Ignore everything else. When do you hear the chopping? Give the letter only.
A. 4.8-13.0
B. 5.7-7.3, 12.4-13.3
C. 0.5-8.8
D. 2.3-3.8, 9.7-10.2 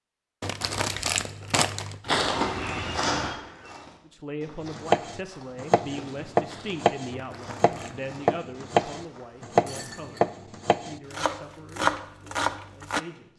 A.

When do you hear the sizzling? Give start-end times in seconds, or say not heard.
not heard.